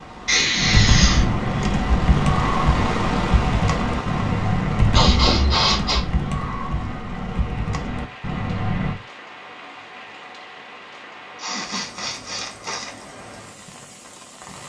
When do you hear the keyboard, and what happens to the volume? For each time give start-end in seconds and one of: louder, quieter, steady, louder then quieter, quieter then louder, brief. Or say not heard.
0.6-8.9 quieter.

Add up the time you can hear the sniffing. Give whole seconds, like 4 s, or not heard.
4 s.